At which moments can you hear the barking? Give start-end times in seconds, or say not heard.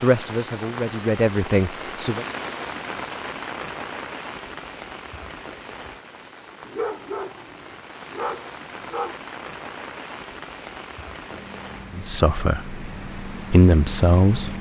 6.7-9.2.